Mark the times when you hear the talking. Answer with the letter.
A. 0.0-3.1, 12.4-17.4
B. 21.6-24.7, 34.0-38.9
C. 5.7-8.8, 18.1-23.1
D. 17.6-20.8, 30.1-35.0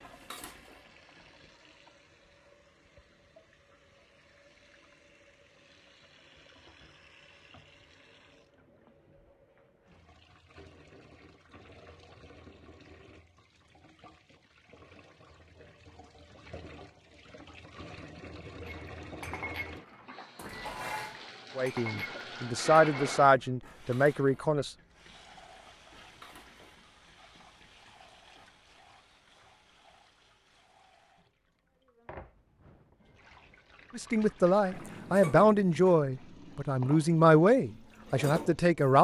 B.